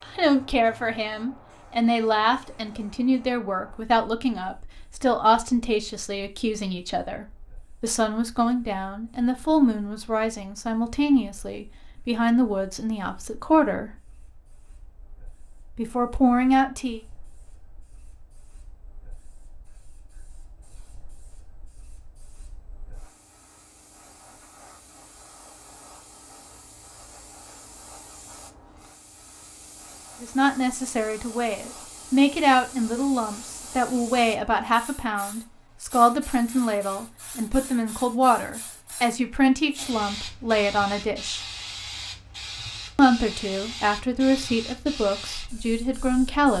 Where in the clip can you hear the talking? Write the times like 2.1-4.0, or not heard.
0.0-13.9, 15.8-17.0, 30.2-41.5, 43.0-46.5.